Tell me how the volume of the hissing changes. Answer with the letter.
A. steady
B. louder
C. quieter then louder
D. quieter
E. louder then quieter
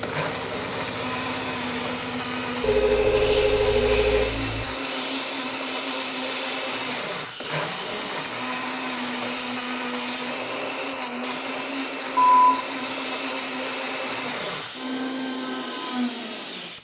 A.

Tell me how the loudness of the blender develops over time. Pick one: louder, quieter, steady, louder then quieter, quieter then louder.
steady.